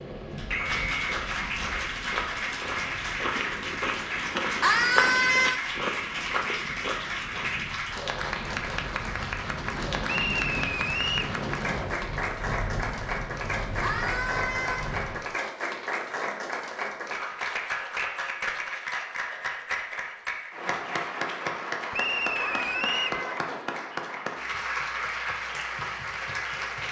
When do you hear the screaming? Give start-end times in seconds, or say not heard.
4.6-5.6, 13.8-14.9, 22.4-23.4.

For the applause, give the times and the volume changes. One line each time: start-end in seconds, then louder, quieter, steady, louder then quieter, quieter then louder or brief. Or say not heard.
0.0-26.8 steady.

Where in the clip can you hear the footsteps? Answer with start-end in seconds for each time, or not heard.
0.4-7.7.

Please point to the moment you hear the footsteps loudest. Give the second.
5 s.